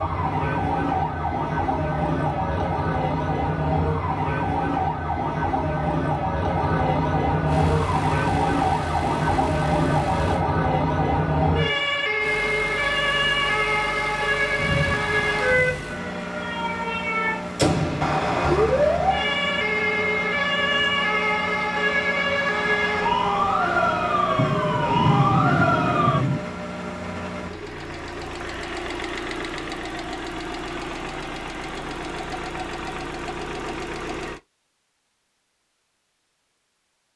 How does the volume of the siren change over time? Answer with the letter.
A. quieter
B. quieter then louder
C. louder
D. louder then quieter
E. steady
E.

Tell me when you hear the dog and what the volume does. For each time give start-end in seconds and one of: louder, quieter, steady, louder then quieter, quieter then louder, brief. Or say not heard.
not heard.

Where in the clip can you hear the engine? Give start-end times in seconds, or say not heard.
7.5-10.4, 12.2-34.4.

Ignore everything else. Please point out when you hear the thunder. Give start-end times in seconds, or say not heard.
14.6-15.8, 24.4-26.4.